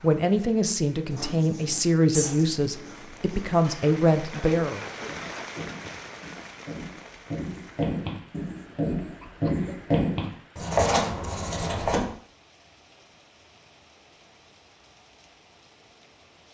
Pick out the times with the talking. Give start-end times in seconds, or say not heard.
0.0-4.8.